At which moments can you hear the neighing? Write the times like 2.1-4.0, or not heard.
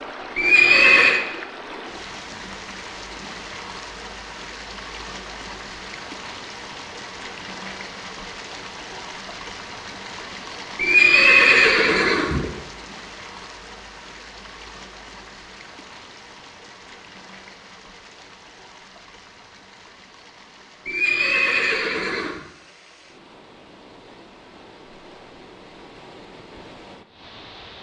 0.3-1.2, 10.8-12.4, 20.9-22.4.